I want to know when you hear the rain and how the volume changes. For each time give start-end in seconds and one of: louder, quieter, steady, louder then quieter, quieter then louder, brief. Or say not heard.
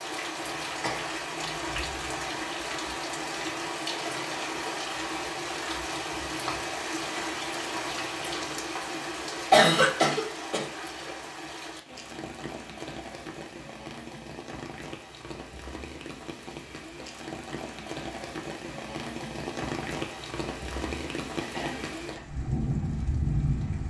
0.0-23.8 quieter then louder.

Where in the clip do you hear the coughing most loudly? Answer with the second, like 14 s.
10 s.